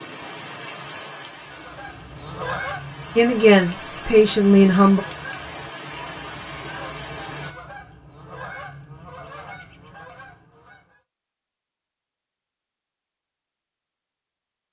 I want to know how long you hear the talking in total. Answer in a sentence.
The talking can be heard for 2 seconds in total.